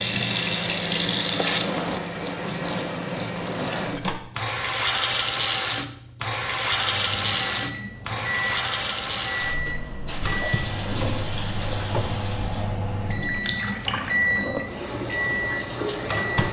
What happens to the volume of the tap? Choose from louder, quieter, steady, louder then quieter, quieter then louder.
quieter.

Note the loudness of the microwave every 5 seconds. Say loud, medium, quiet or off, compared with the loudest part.
medium, medium, loud, loud.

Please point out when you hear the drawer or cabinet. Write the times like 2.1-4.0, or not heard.
10.8-12.2.